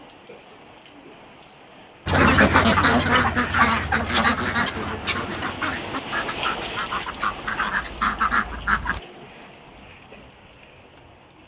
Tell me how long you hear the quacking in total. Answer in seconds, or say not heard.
7 s.